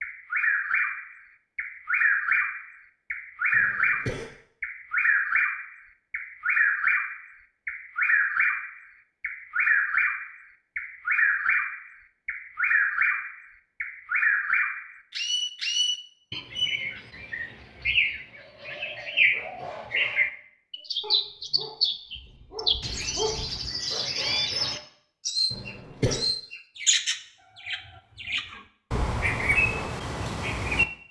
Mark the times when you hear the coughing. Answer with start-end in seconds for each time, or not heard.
3.5-4.3, 25.5-26.2.